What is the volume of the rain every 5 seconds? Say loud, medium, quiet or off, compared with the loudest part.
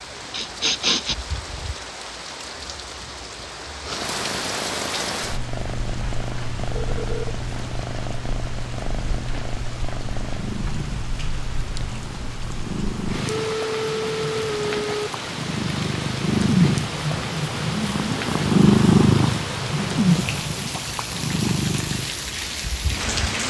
medium, medium, medium, loud, loud.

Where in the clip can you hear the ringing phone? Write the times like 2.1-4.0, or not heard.
6.7-7.3, 13.2-15.1.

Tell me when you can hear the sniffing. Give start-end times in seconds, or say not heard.
0.3-1.1.